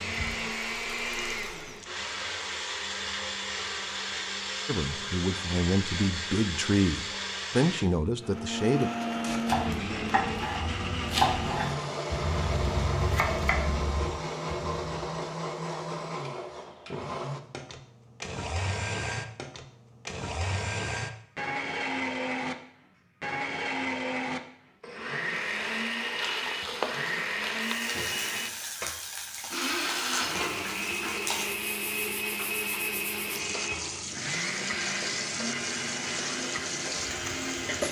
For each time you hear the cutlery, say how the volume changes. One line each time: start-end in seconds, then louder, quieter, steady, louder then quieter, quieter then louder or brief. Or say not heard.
not heard.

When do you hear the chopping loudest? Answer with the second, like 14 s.
11 s.